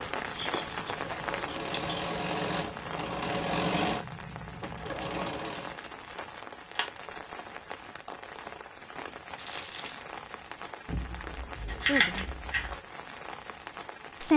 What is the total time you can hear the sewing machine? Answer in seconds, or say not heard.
6 s.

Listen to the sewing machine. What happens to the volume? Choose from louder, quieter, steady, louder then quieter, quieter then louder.
louder then quieter.